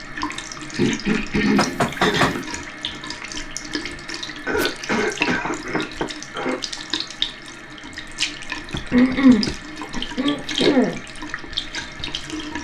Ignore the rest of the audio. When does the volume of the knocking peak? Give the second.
2 s.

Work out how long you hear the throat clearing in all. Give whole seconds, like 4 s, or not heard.
6 s.